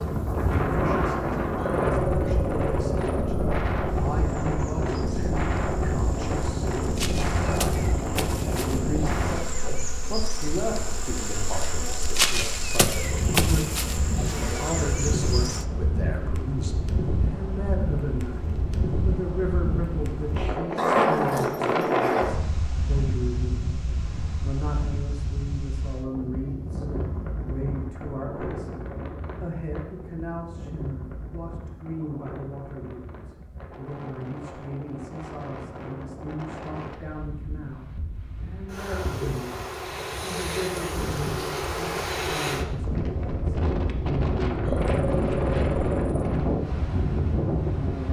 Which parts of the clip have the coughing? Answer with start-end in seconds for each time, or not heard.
not heard.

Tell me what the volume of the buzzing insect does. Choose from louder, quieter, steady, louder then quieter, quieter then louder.
louder.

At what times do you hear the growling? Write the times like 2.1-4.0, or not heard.
1.6-3.6, 20.8-22.4, 44.6-46.4.